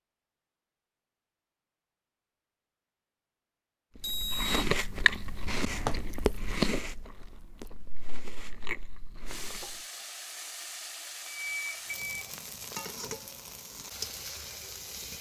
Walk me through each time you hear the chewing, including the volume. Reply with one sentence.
The chewing can be heard from 4.0 to 9.8 s, getting quieter then louder.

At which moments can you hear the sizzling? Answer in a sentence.
You can hear the sizzling from 9.2 to 15.1 s.